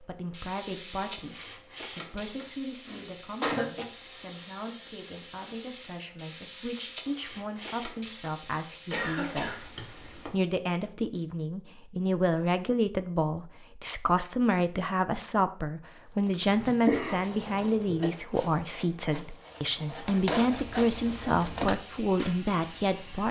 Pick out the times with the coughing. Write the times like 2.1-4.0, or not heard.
2.9-3.9, 8.8-10.3, 16.4-18.1.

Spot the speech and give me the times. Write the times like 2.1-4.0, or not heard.
0.0-23.2.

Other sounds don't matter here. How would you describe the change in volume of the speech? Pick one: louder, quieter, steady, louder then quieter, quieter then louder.
louder.